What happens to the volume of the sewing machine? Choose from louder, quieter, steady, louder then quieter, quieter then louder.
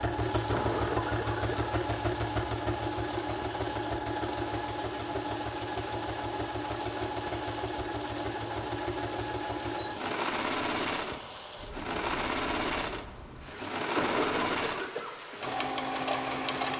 steady.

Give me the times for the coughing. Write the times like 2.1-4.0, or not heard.
0.5-1.8, 13.9-15.2.